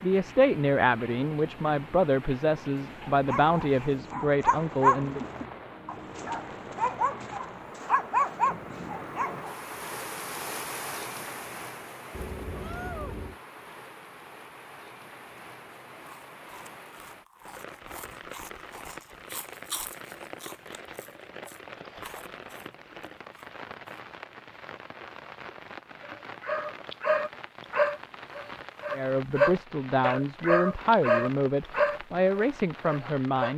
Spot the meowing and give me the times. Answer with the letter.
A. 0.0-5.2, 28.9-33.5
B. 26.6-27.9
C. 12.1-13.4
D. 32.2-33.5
C.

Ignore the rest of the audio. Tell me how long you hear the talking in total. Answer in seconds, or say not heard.
10 s.